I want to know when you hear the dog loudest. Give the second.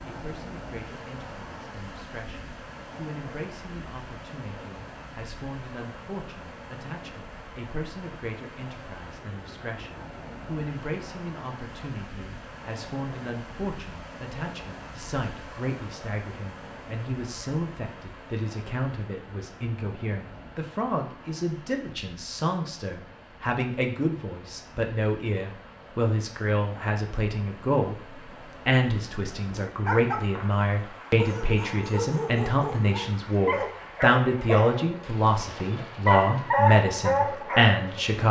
37 s.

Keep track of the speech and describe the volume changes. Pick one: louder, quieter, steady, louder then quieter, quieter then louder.
louder.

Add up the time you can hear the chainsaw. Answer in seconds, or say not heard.
not heard.